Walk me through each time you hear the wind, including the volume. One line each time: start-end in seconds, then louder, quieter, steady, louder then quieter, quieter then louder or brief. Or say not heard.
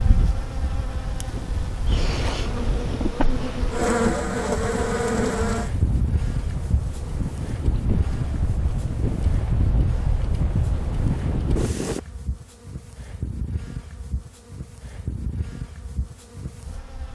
0.0-12.0 louder.